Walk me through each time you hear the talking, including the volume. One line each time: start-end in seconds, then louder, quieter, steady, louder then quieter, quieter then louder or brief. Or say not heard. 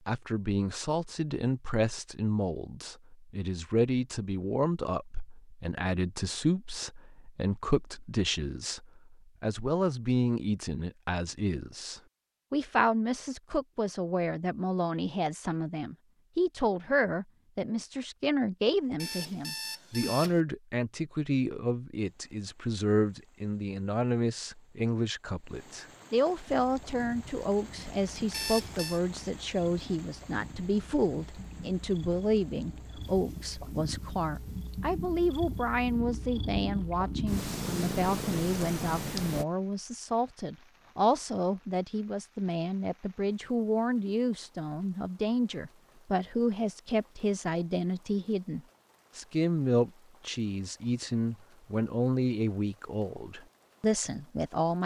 0.1-54.8 steady.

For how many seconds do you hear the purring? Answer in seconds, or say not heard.
13 s.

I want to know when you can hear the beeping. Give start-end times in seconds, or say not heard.
19.0-20.4, 28.3-29.0.